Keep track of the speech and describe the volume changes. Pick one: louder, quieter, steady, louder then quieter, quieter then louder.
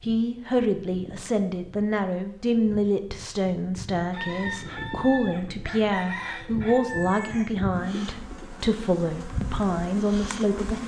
steady.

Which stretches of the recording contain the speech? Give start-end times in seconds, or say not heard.
0.0-10.8.